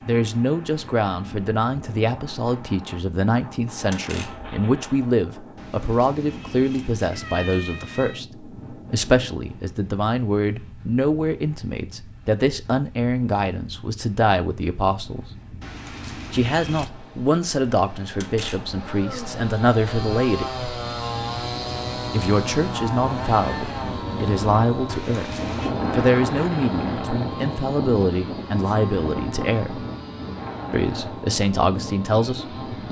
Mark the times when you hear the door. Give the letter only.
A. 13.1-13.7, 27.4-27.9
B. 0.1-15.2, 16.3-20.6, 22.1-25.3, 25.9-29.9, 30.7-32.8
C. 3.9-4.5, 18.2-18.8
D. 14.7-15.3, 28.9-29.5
C.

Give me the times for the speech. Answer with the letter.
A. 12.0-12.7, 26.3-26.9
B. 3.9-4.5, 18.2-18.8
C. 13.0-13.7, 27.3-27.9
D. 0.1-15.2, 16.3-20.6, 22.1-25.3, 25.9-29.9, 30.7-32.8
D.